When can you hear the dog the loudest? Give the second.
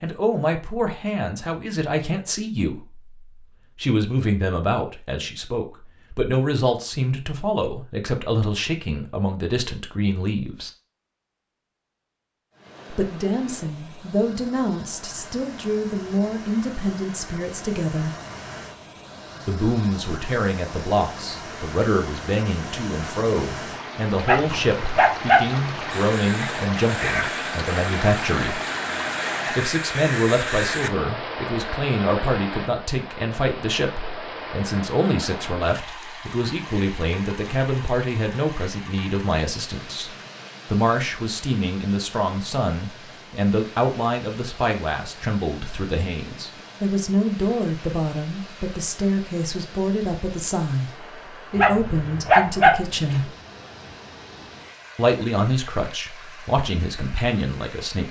53 s.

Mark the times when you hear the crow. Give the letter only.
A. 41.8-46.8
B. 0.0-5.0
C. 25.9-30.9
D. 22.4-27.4
C.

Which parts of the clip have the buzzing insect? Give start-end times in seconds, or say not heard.
not heard.